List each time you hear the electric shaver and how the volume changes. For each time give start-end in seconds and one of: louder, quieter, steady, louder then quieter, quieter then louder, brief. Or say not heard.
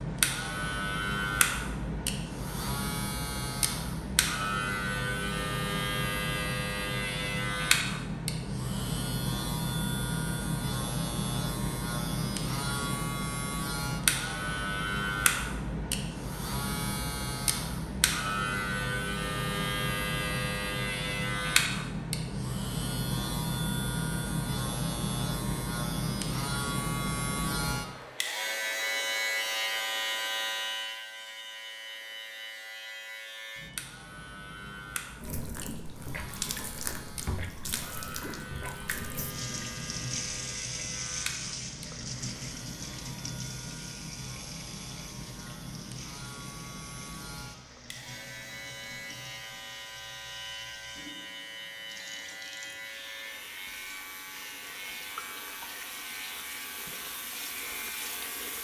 0.0-58.5 quieter.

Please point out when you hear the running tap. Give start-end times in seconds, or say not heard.
35.2-58.5.